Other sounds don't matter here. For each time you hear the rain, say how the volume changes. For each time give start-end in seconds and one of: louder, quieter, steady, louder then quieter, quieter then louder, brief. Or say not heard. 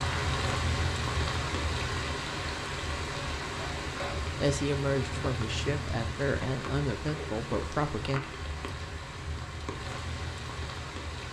0.0-11.2 quieter.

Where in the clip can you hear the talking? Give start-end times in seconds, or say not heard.
4.3-8.2.